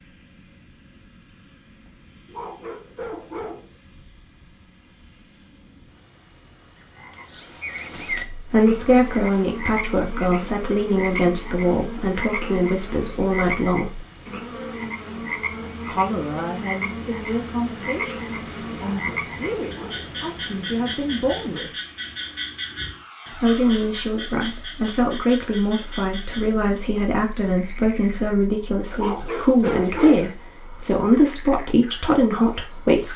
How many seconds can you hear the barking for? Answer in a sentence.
You can hear the barking for 4 seconds altogether.